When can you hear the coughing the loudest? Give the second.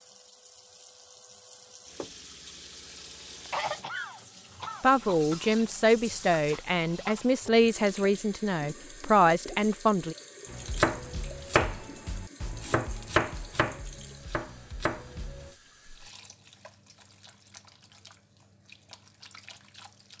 4 s.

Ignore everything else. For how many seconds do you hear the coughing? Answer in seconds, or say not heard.
2 s.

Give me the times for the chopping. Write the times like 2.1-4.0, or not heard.
10.5-15.6.